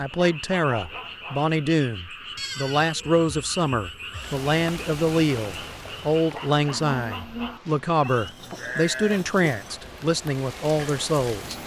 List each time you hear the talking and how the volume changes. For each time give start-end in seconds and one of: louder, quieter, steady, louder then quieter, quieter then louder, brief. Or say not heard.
0.0-11.6 steady.